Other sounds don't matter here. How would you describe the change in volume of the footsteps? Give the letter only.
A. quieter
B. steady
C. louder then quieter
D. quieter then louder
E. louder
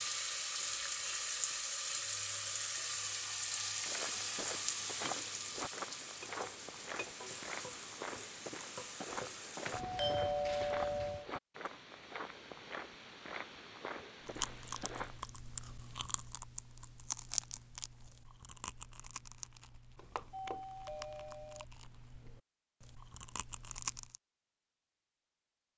B.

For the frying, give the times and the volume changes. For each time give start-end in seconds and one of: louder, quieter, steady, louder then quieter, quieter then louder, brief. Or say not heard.
0.0-9.8 quieter.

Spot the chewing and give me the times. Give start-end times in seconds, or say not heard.
14.2-24.1.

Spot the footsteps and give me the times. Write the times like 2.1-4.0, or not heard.
3.8-15.2.